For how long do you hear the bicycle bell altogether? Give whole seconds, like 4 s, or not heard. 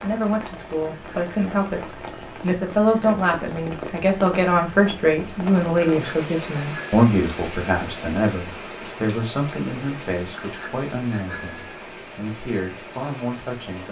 4 s.